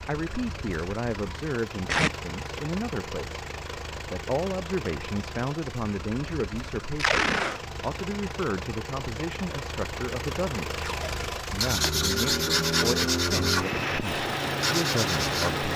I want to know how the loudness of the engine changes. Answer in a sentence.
The loudness of the engine goes up.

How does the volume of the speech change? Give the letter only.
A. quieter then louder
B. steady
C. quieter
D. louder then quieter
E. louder
B.